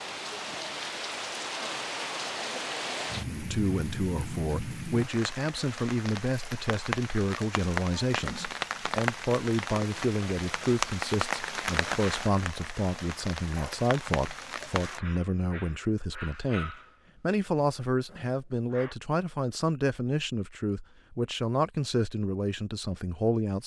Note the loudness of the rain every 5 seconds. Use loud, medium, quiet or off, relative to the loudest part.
loud, loud, loud, off, off.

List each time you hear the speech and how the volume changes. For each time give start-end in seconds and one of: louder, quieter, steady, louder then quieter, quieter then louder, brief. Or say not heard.
3.3-23.6 steady.